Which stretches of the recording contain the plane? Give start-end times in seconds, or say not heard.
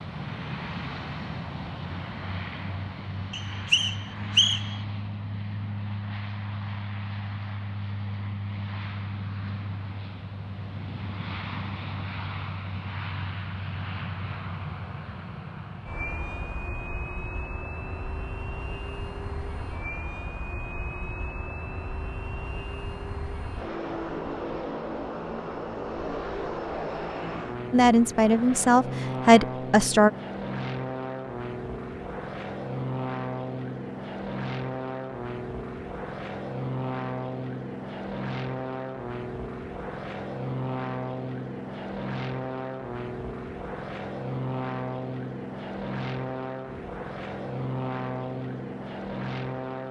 0.0-49.8.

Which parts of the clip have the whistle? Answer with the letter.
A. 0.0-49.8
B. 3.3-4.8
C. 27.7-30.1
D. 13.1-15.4
B.